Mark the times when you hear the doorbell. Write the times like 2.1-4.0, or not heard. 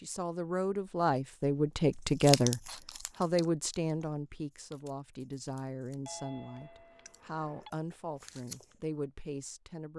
6.0-7.7.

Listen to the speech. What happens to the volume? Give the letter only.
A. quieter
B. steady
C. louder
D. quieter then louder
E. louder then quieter
A.